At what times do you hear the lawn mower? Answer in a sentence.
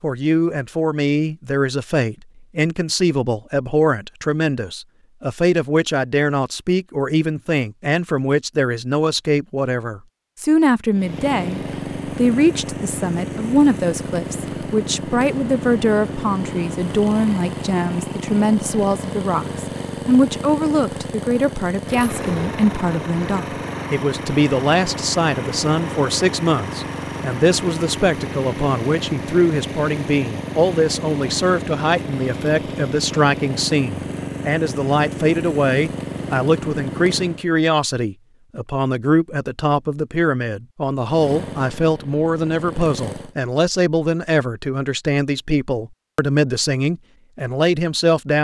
The lawn mower can be heard from 10.9 to 37.5 s and from 41.0 to 43.4 s.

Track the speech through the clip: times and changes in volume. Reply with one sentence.
The speech can be heard from 0.0 to 48.3 s, at a steady volume.